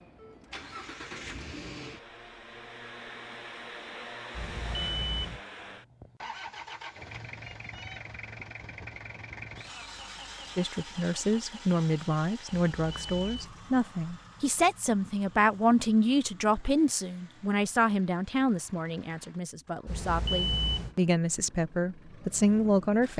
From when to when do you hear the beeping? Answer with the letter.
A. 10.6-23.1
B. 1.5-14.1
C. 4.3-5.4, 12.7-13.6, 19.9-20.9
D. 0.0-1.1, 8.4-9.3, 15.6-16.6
C.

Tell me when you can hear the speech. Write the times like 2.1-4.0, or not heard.
10.6-23.1.